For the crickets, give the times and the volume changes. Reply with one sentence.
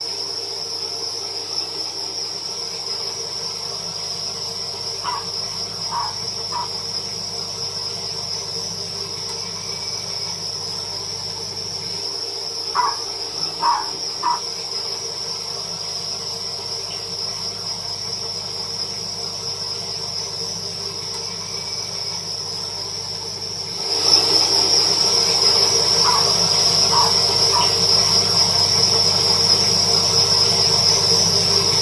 You can hear the crickets from 0.0 to 31.7 s, getting louder.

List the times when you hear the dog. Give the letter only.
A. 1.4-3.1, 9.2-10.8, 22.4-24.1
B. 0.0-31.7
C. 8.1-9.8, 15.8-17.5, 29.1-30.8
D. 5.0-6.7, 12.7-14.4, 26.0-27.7
D.